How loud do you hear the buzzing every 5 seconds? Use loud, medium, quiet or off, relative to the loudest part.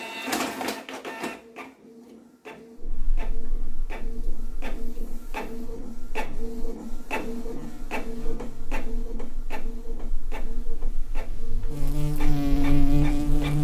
quiet, quiet, loud.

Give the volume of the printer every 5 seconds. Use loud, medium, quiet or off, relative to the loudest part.
loud, loud, medium.